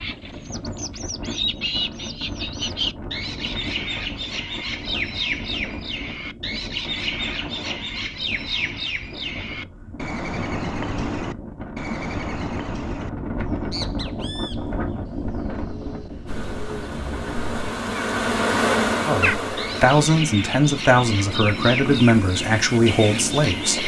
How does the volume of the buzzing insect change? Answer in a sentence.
The loudness of the buzzing insect goes up, then down.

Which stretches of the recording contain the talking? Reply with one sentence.
You can hear the talking from 19.1 to 23.8 s.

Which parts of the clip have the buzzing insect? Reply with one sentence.
The buzzing insect can be heard from 16.2 to 23.8 s.